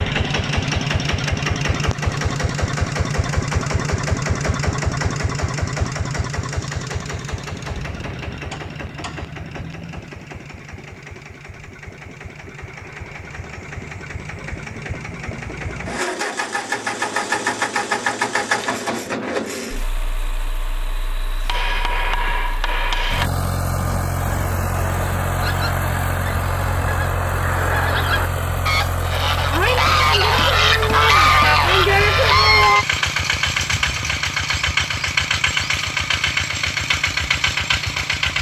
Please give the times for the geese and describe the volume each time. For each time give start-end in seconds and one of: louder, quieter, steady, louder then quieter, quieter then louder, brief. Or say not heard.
23.9-32.9 louder.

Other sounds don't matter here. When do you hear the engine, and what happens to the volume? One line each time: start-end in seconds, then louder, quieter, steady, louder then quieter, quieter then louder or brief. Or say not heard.
0.0-38.3 quieter then louder.